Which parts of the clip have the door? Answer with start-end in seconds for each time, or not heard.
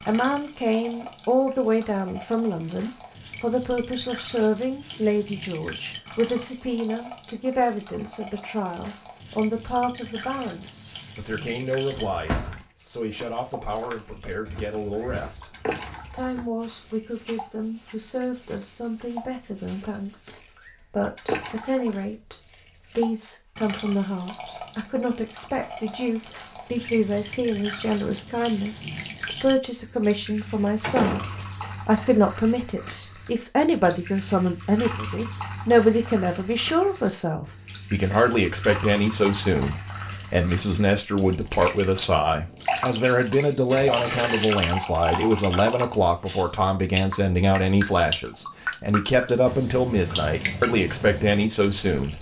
11.9-12.6, 30.8-31.8, 43.6-44.5.